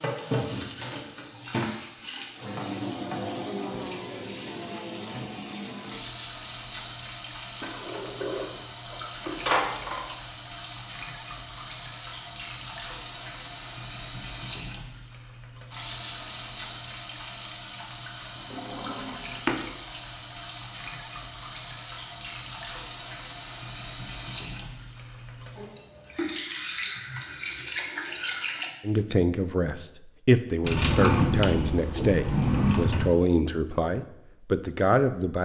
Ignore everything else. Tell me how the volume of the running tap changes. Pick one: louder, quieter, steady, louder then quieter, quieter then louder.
steady.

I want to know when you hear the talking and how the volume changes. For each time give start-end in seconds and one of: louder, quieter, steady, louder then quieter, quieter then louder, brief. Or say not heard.
28.8-35.4 steady.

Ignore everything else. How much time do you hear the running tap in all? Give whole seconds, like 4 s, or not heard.
29 s.